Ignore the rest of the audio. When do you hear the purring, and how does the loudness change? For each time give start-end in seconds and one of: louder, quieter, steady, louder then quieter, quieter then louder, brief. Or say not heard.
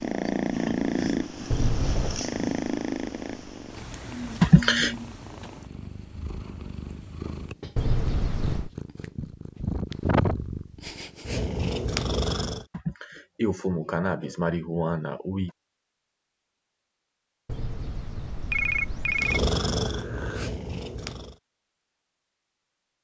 0.0-12.7 quieter then louder
19.1-21.4 brief.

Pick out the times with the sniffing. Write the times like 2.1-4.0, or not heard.
4.4-5.0, 12.7-15.5.